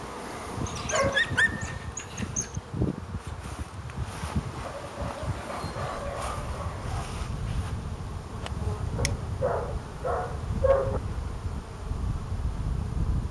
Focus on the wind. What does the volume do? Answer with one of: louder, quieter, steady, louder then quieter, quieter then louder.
steady.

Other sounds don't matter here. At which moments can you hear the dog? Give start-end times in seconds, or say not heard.
0.7-2.6, 4.6-7.1, 8.9-11.0.